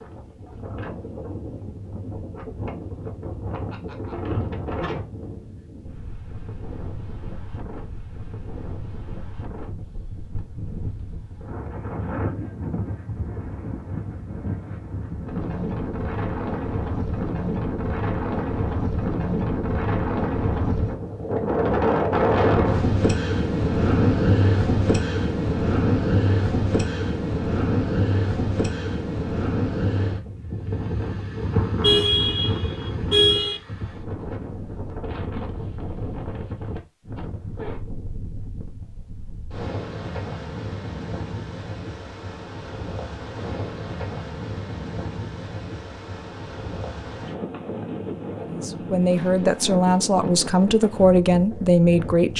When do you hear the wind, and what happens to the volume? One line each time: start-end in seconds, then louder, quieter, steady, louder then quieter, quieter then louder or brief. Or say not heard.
0.0-52.3 louder then quieter.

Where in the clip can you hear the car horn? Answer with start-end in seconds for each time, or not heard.
31.8-33.6.